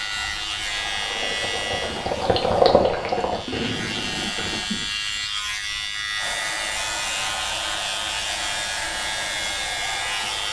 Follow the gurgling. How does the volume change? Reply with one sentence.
The volume of the gurgling goes up, then down.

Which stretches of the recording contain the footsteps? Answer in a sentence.
The footsteps can't be heard in this clip.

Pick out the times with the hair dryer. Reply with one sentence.
The hair dryer can be heard from 0.0 to 4.8 s and from 6.2 to 10.4 s.